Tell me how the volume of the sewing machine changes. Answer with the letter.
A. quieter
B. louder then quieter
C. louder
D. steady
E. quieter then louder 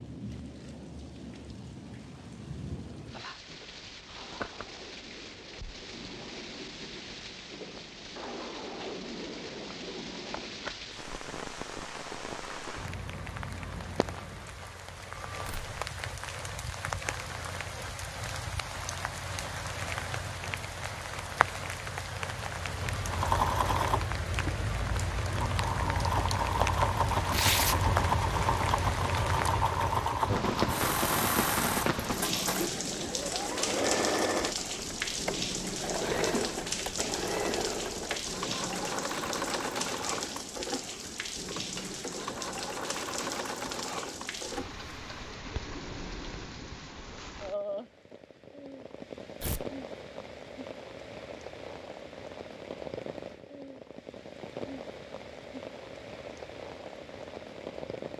A.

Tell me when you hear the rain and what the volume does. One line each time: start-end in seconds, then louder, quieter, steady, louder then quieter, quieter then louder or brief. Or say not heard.
0.0-58.1 louder then quieter.